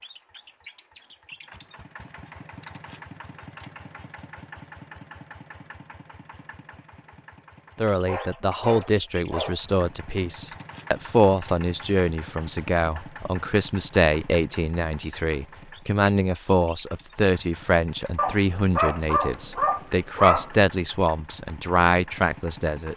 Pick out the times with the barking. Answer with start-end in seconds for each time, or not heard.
8.1-9.6, 18.1-20.6.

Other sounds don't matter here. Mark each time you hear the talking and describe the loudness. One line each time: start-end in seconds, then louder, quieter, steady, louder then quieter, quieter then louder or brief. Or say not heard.
7.8-22.9 steady.